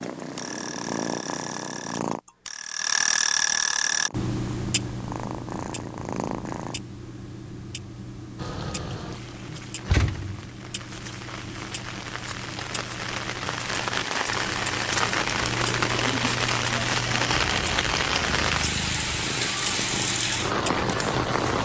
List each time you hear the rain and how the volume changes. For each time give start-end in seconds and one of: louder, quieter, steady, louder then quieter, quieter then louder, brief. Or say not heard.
8.3-21.5 louder.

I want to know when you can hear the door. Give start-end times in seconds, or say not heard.
9.8-10.4.